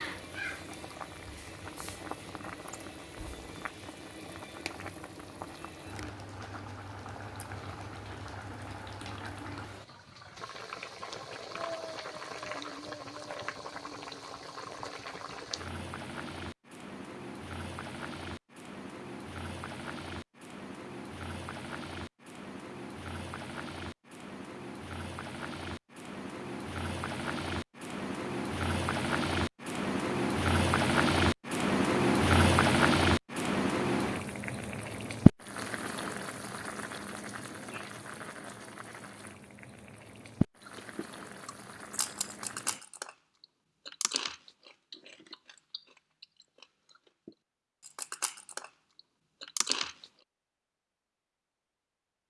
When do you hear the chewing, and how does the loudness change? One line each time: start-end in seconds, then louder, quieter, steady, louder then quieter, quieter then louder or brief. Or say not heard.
40.6-50.0 quieter then louder.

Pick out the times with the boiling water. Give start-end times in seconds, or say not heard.
0.0-42.8.